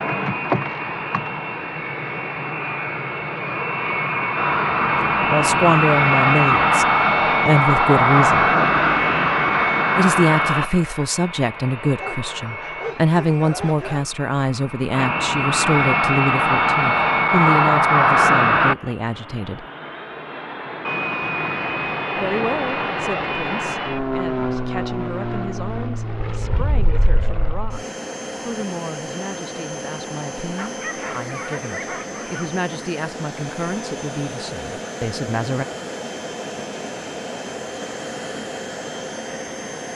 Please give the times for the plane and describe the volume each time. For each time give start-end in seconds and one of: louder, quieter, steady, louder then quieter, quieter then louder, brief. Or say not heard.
0.0-39.9 quieter.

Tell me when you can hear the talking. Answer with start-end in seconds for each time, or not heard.
5.2-8.6, 9.9-19.6, 22.1-35.6.